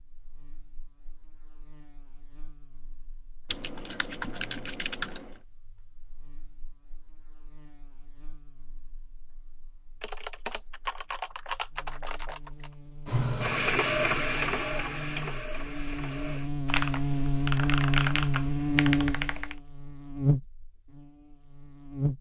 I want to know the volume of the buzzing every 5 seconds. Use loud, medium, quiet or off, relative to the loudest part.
quiet, quiet, quiet, loud, loud.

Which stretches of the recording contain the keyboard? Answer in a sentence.
The keyboard can be heard from 3.5 to 5.4 s, from 10.0 to 12.7 s and from 16.6 to 19.6 s.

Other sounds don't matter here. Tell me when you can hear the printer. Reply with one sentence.
The printer can be heard from 13.1 to 16.5 s.